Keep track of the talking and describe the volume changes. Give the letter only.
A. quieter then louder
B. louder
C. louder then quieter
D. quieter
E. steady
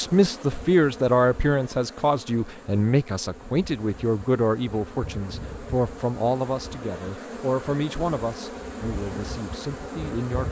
D.